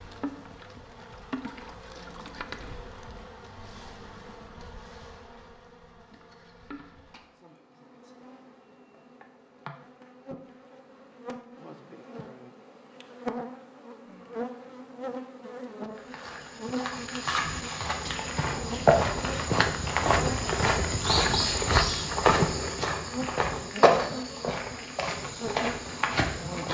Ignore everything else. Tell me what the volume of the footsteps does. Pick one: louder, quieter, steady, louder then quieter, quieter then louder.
louder then quieter.